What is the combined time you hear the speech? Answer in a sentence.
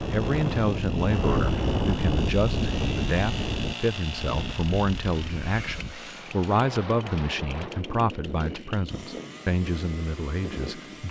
The speech can be heard for 11 seconds in total.